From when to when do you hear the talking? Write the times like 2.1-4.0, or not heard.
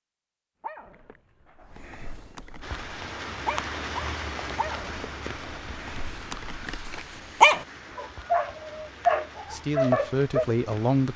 9.5-11.1.